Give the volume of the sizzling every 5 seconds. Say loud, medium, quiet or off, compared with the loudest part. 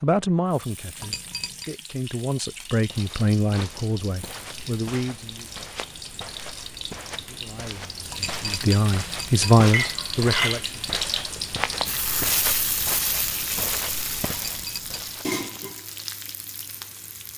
quiet, medium, loud, medium.